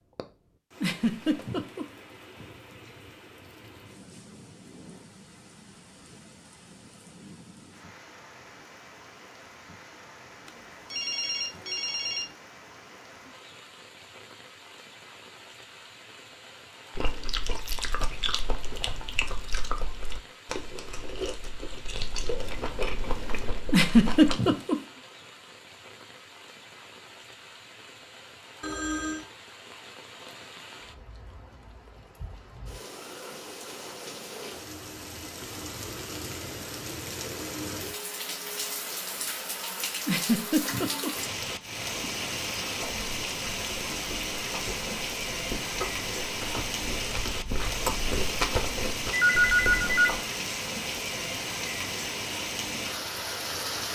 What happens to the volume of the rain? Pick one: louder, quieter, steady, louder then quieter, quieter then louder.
louder.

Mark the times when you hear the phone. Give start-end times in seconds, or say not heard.
10.4-12.2, 28.6-29.2, 49.1-50.1.